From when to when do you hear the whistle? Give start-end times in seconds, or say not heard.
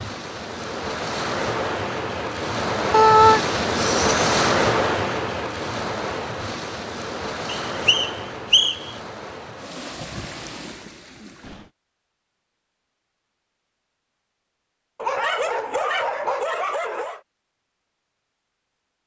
7.7-8.9.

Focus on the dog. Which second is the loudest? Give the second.
3 s.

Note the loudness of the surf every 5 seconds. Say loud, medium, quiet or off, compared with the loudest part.
loud, medium, quiet, off.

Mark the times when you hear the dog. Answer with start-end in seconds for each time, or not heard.
2.9-4.3, 14.9-17.2.